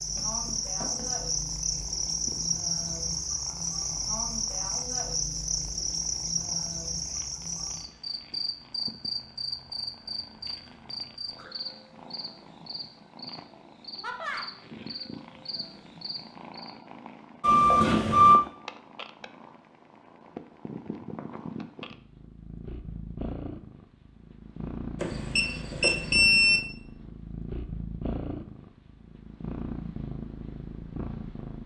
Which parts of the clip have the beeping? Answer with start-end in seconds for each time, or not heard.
0.1-1.1, 17.4-18.4, 24.9-26.6.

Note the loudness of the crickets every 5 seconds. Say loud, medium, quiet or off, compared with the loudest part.
loud, loud, medium, quiet, off, off, off.